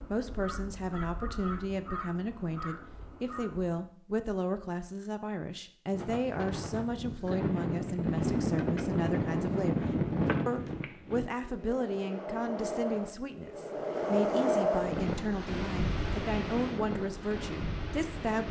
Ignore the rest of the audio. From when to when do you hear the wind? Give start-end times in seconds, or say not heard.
5.9-18.4.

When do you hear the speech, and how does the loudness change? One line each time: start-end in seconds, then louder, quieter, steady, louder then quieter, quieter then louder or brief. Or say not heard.
0.1-18.4 steady.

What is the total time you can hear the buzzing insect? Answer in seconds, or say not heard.
not heard.